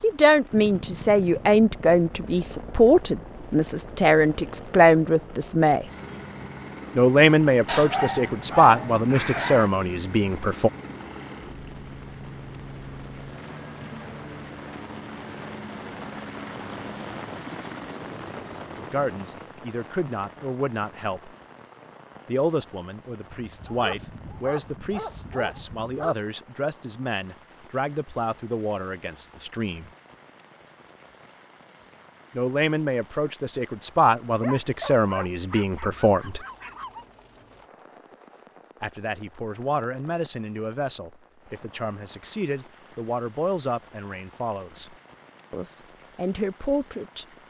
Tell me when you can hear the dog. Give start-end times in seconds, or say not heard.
7.7-9.7, 23.3-26.1, 34.3-37.0.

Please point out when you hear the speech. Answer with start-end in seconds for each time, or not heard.
0.0-5.8, 7.0-10.7, 18.8-21.3, 22.2-29.9, 32.4-36.4, 38.8-47.2.